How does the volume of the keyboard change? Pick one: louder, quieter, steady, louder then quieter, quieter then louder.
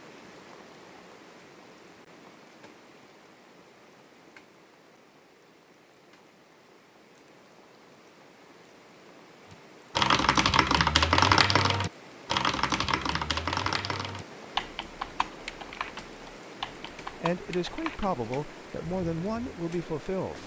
quieter.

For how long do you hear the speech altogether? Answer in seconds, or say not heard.
4 s.